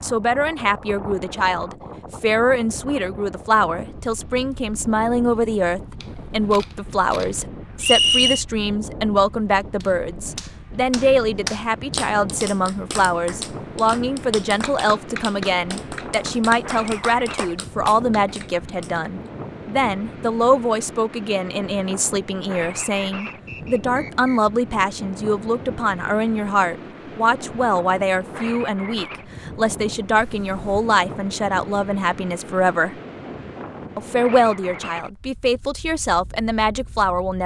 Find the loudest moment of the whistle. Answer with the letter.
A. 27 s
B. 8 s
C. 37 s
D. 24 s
B.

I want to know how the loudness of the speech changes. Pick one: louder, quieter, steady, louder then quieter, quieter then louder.
steady.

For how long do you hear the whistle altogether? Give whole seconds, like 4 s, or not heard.
2 s.